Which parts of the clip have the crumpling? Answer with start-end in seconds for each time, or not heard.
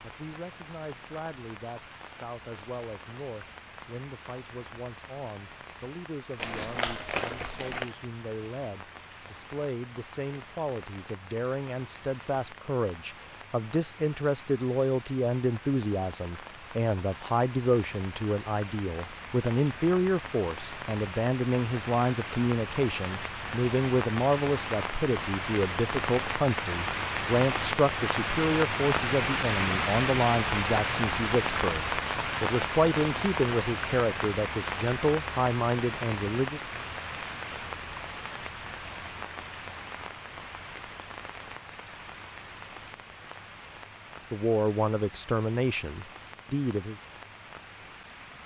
6.3-8.0.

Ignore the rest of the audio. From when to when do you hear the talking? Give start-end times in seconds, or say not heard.
0.0-36.6, 44.3-47.0.